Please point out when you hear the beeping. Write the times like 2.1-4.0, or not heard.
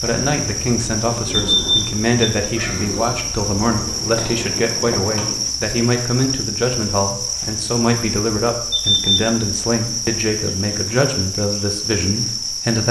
1.4-2.3, 8.7-9.2.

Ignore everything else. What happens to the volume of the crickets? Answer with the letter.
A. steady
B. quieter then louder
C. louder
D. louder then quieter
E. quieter
A.